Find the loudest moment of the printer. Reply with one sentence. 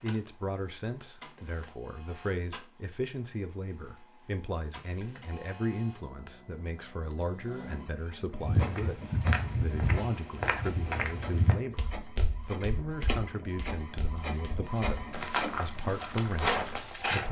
The loudest moment of the printer is at 17 seconds.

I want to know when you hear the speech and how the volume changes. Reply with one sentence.
You can hear the speech from 0.0 to 17.2 s, at a steady volume.